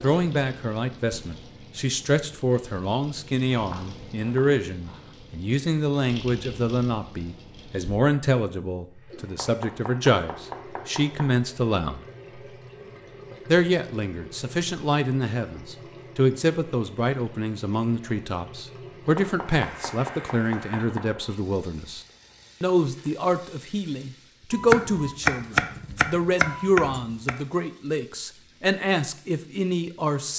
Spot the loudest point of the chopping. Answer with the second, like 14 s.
25 s.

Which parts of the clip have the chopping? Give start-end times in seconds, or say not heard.
3.5-5.2, 9.2-11.4, 19.1-21.1, 24.5-27.4.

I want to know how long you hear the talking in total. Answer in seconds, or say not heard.
28 s.